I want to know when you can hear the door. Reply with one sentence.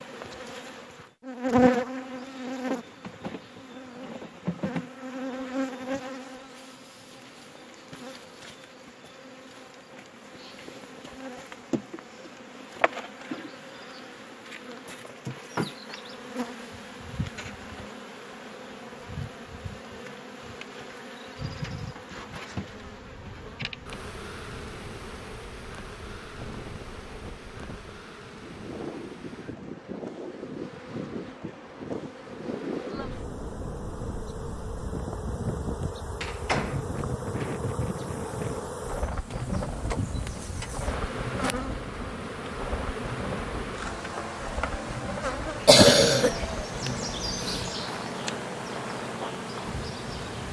You can hear the door from 36.2 to 36.9 s.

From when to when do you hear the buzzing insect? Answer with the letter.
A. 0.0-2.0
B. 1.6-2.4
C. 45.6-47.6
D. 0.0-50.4
D.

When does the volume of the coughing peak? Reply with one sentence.
The loudest moment of the coughing is at 46 seconds.